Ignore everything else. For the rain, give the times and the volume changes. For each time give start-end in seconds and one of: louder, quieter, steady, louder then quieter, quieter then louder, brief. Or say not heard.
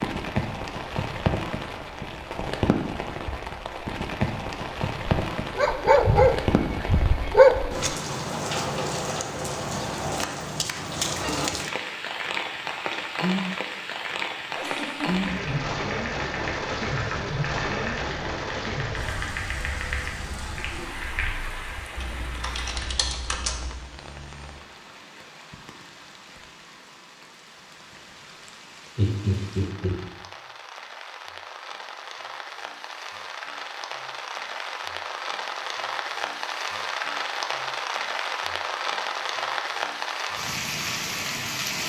0.0-41.8 quieter then louder.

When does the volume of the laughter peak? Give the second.
29 s.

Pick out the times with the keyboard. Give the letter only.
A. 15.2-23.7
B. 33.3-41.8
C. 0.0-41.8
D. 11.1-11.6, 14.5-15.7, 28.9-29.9
A.